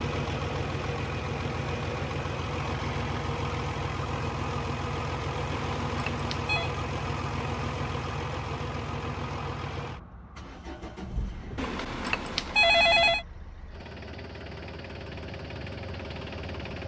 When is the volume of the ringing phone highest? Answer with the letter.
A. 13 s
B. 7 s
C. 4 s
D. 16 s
A.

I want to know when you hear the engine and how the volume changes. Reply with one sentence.
You can hear the engine from 0.0 to 16.8 s, getting quieter.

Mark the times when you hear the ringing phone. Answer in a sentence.
You can hear the ringing phone from 5.5 to 6.7 s and from 11.6 to 13.2 s.